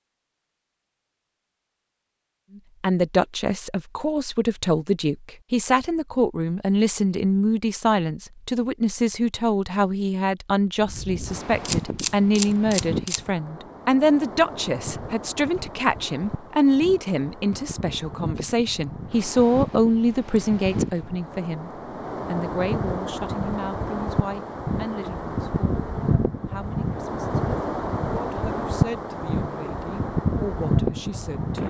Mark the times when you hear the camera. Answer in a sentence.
You can hear the camera from 11.7 to 13.2 s.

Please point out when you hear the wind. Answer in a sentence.
You can hear the wind from 10.8 to 31.6 s.